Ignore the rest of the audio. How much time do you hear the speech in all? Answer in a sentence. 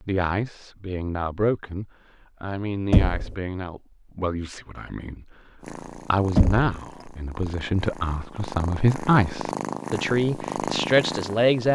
You can hear the speech for 12 seconds altogether.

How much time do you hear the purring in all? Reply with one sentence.
You can hear the purring for 6 seconds altogether.